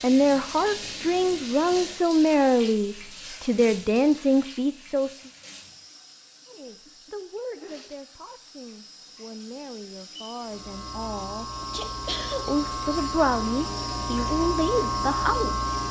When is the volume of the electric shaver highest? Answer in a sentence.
The volume of the electric shaver peaks at 15 seconds.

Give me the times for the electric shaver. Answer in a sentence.
You can hear the electric shaver from 10.3 to 15.8 s.